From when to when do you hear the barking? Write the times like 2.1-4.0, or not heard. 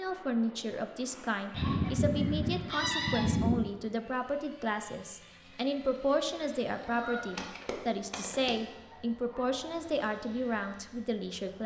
not heard.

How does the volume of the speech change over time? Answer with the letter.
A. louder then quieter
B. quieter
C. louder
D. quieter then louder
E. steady
E.